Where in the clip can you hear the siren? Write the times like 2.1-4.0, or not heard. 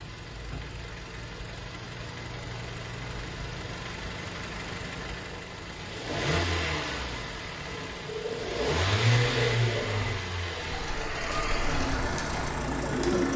not heard.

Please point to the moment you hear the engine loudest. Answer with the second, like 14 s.
9 s.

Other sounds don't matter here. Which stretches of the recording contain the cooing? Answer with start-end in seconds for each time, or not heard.
8.0-13.3.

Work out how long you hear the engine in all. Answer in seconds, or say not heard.
13 s.